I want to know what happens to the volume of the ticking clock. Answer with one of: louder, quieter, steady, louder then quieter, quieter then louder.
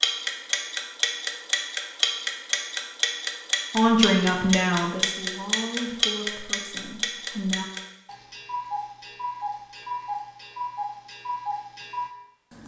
quieter.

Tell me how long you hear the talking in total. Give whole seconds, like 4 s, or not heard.
4 s.